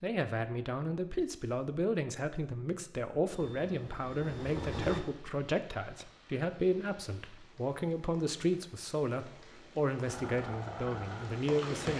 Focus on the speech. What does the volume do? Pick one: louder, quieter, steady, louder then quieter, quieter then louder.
steady.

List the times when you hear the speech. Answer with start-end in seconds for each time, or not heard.
0.0-11.9.